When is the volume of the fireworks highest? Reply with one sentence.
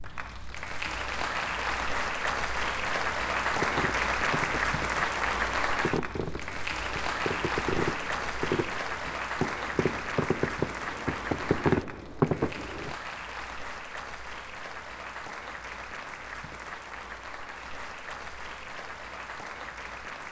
The volume of the fireworks peaks at 12 seconds.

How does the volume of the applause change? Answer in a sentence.
The volume of the applause goes down.